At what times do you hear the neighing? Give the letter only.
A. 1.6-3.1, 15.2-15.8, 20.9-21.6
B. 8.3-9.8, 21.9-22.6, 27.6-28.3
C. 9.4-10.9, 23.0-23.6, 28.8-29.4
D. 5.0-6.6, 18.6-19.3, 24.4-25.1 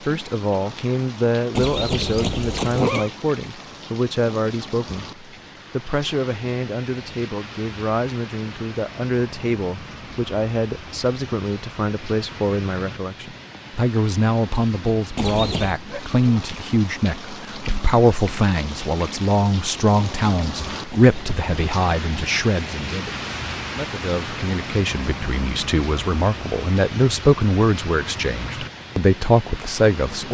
A.